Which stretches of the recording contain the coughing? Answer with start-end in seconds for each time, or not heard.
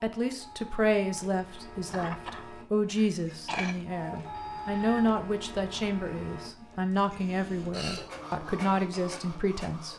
1.9-3.8.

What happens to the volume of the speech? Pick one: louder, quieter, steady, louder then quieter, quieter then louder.
steady.